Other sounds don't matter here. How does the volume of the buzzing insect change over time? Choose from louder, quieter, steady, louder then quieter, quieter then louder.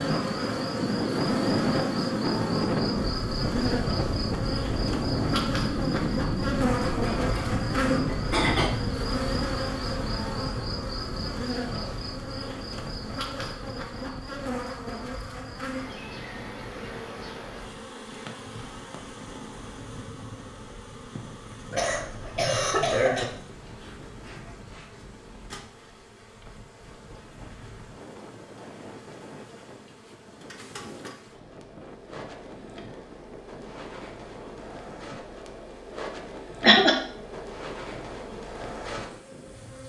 quieter then louder.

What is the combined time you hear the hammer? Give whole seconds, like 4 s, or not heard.
not heard.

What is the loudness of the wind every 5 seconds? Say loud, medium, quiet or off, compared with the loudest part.
loud, loud, quiet, quiet, quiet, quiet, quiet, quiet.